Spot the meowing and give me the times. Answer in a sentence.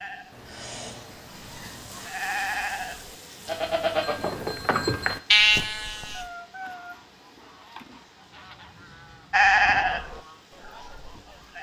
You can hear the meowing from 0.3 to 2.1 s and from 6.1 to 8.0 s.